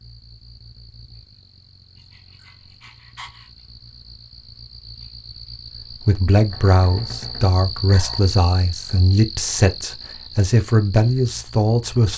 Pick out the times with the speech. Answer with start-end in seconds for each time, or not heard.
6.0-12.1.